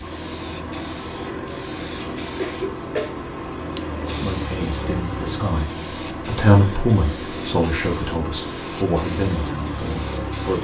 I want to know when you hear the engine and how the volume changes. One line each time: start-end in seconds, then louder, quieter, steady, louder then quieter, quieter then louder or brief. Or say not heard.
0.0-10.6 steady.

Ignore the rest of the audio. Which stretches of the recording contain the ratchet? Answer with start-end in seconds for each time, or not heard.
not heard.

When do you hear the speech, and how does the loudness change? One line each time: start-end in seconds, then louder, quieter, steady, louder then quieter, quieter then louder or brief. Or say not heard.
4.0-10.6 louder then quieter.